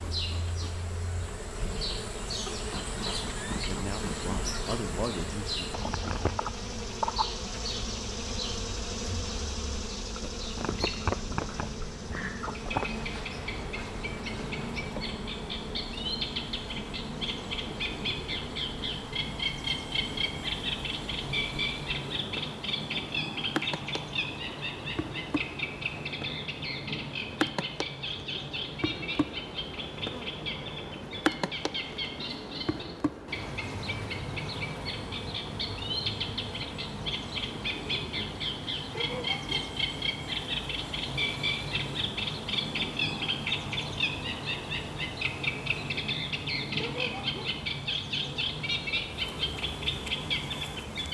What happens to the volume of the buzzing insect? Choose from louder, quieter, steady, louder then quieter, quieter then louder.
quieter.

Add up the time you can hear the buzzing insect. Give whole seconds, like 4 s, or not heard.
51 s.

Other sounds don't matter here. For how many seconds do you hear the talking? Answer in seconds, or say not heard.
2 s.